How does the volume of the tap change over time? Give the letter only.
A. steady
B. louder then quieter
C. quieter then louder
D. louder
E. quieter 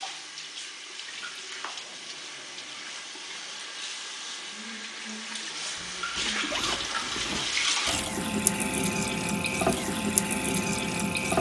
D.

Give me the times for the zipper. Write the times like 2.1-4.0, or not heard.
1.1-3.0, 5.8-7.7.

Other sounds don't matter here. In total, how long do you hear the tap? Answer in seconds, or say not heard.
11 s.